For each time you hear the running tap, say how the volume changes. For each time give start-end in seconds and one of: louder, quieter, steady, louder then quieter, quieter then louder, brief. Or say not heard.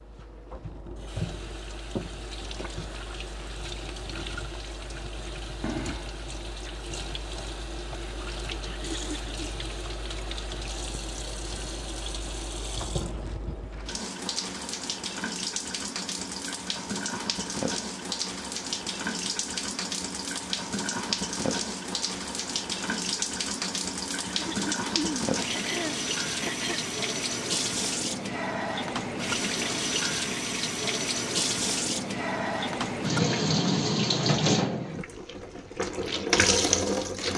0.0-37.3 louder.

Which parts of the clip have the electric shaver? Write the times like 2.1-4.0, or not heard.
not heard.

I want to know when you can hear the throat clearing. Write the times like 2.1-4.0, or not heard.
8.6-9.3, 24.2-26.9.